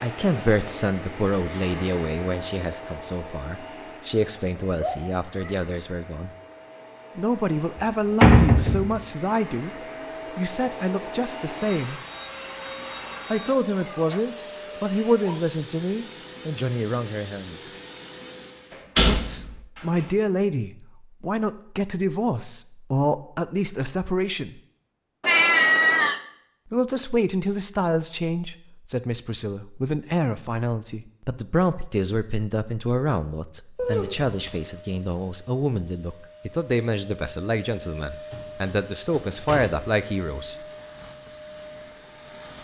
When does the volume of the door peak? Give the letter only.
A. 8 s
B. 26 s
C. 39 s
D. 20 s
A.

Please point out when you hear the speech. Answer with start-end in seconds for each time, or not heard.
0.0-6.3, 7.2-9.8, 10.3-12.0, 13.3-17.7, 19.1-24.6, 26.7-40.5.